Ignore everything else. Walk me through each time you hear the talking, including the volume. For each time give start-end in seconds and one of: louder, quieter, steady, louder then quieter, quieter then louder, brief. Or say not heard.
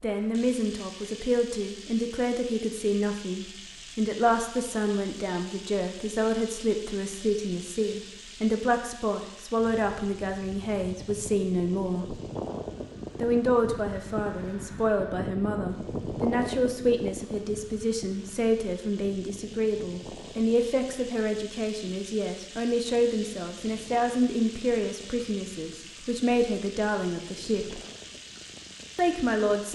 0.0-12.2 steady
13.2-27.8 steady
28.9-29.7 brief.